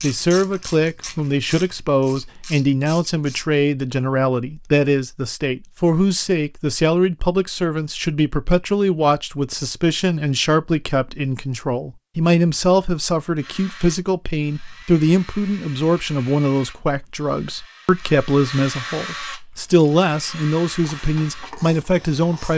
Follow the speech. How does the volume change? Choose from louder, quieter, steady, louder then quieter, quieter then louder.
steady.